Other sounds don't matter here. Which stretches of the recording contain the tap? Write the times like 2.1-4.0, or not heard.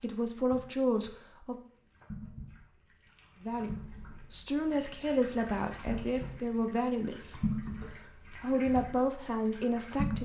0.0-10.2.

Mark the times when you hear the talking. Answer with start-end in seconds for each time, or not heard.
0.0-1.6, 3.4-7.5, 8.3-10.2.